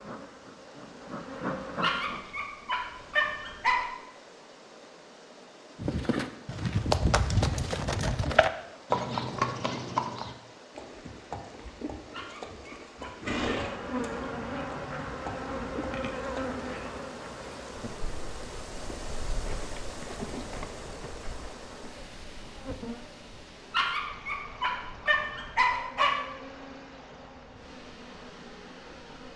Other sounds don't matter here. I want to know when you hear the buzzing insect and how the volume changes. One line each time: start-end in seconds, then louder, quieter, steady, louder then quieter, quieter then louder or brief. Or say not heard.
0.0-2.2 brief
13.4-29.3 quieter.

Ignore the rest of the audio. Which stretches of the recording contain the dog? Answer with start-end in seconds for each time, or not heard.
1.8-3.9, 12.1-13.3, 23.7-26.2.